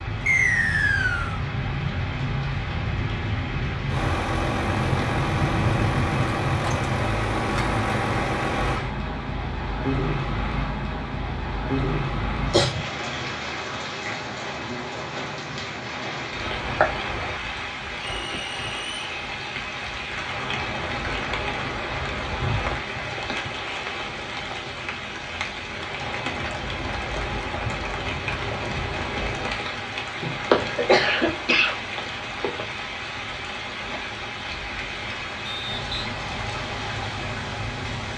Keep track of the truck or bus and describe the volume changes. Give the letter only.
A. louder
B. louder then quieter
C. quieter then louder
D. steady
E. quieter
D.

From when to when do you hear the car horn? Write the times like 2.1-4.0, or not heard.
not heard.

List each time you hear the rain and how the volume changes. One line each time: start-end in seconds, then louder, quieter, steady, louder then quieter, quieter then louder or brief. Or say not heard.
0.0-38.1 steady.